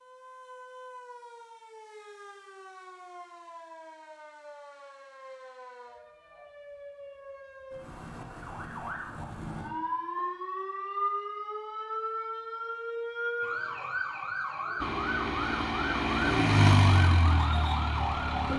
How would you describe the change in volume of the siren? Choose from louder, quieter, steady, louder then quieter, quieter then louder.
louder.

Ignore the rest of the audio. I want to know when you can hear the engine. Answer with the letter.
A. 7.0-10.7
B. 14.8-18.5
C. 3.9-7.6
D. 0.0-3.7
B.